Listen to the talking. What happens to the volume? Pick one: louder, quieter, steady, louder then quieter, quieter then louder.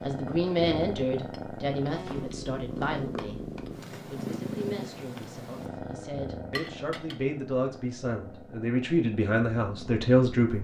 quieter then louder.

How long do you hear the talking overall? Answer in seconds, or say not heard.
10 s.